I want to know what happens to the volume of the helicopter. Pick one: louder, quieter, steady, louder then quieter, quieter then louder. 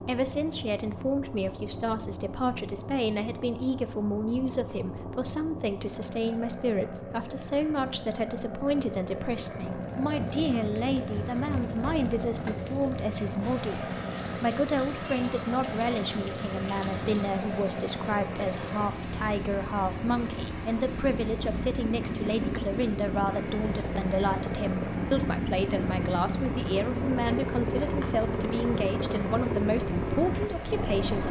louder.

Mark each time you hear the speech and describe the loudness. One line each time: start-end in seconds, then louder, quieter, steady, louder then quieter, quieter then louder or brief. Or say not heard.
0.1-31.2 steady.